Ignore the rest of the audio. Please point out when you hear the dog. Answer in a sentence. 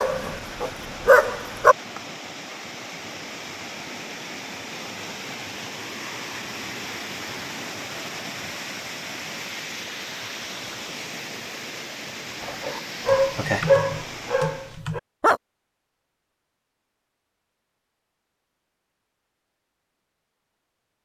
You can hear the dog from 0.0 to 1.8 s and from 12.4 to 15.4 s.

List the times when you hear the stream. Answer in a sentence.
The stream can be heard from 0.0 to 14.8 s.